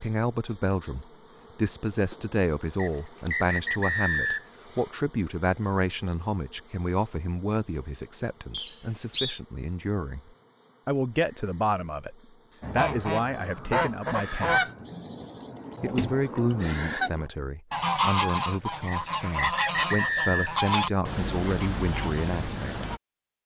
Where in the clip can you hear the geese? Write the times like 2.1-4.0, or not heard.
12.6-23.0.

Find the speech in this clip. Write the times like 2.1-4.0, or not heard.
0.0-14.7, 15.8-22.9.